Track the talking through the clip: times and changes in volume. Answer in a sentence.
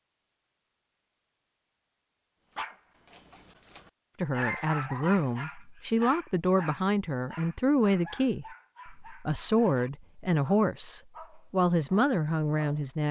You can hear the talking from 4.2 to 13.0 s, at a steady volume.